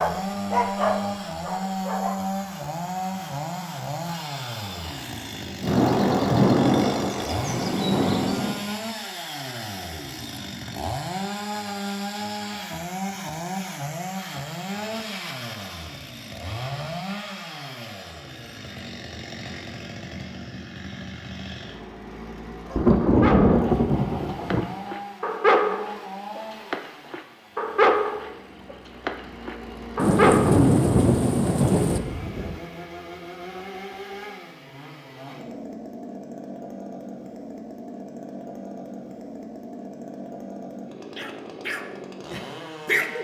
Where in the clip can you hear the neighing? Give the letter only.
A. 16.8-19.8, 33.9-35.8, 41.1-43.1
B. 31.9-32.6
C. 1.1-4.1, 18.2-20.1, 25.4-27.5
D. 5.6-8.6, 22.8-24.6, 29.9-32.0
B.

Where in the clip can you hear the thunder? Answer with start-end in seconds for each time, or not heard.
5.6-8.6, 22.8-24.6, 29.9-32.0.